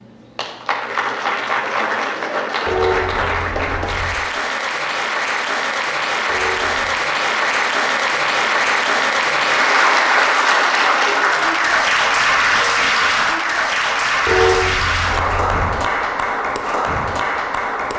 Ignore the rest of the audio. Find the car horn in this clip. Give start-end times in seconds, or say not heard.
2.6-4.2, 6.2-7.0, 14.2-15.6.